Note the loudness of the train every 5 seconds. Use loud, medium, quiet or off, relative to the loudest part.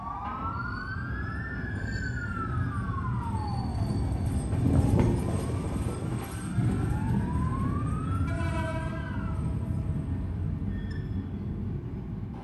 loud, loud, medium.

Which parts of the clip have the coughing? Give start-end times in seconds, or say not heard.
not heard.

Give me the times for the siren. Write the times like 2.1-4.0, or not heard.
0.0-9.4.